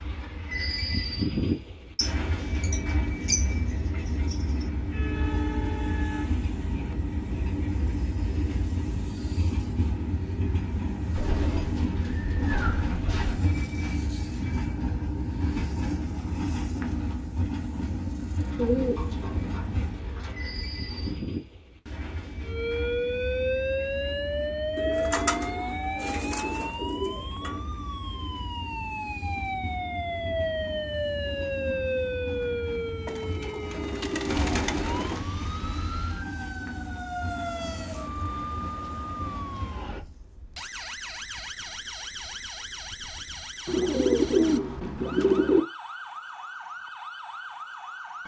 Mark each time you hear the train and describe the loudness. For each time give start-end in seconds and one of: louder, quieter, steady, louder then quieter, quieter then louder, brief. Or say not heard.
0.0-40.0 quieter.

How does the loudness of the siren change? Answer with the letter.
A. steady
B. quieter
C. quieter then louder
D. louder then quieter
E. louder
B.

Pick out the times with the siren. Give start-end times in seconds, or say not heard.
22.4-48.2.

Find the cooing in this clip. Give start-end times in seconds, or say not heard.
1.9-4.7, 11.1-13.4, 18.6-21.2, 24.8-27.6, 33.0-35.2, 43.6-45.6.